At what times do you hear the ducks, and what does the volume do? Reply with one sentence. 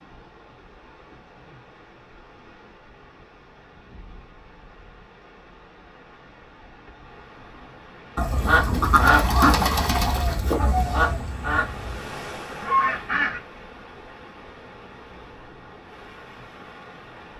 You can hear the ducks from 8.2 to 13.4 s, getting quieter then louder.